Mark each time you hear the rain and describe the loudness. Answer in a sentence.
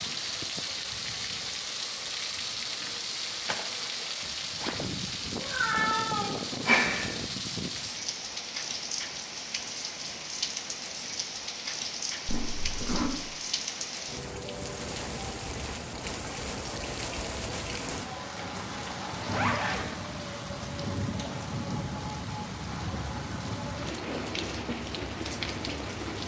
The rain can be heard from 0.0 to 26.2 s, at a steady volume.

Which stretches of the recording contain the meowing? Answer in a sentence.
You can hear the meowing from 5.4 to 7.1 s.